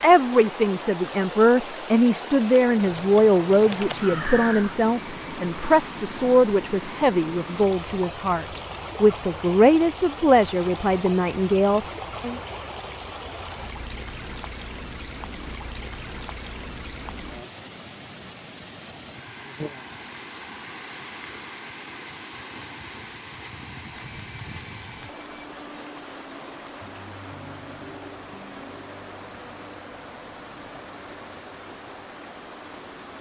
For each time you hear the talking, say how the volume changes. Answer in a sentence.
You can hear the talking from 0.0 to 12.4 s, at a steady volume.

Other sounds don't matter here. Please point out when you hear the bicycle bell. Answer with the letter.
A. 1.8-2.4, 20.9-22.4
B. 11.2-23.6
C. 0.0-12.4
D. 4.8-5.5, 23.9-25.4
D.